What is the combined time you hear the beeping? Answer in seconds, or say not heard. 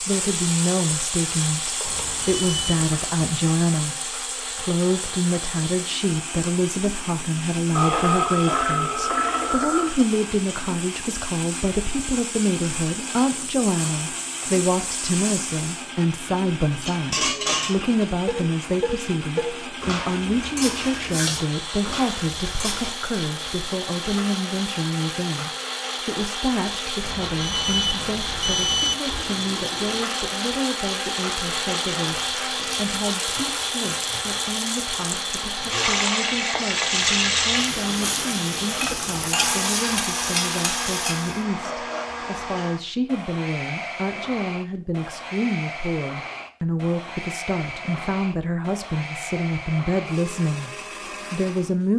3 s.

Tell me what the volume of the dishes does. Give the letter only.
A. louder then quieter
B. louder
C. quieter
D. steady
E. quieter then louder
C.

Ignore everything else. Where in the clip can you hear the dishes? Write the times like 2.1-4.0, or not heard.
16.7-22.9.